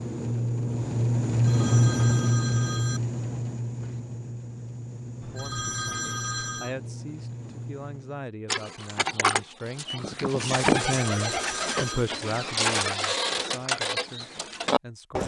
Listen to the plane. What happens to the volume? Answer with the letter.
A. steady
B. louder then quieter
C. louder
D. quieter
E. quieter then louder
D.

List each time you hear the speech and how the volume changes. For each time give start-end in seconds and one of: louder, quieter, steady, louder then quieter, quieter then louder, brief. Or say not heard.
5.3-15.2 louder then quieter.